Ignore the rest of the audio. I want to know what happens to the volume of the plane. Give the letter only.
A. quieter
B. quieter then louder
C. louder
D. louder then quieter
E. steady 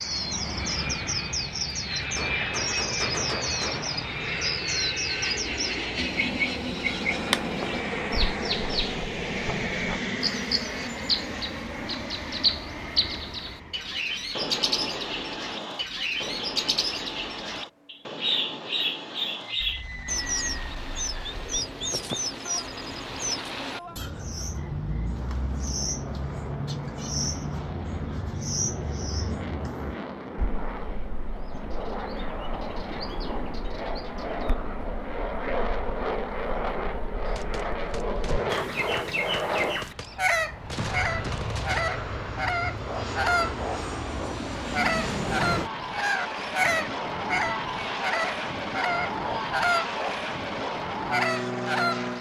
B.